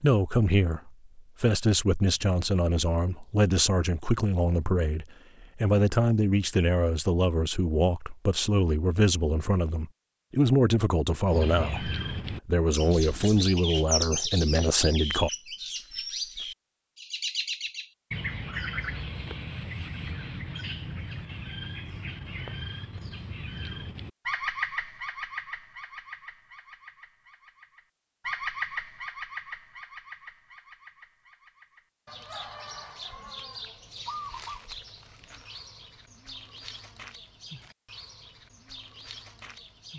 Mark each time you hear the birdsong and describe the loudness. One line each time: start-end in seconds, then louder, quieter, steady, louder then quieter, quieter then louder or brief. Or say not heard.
11.3-39.9 quieter.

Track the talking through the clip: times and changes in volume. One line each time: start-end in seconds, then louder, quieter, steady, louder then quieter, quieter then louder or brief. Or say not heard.
0.0-15.3 steady.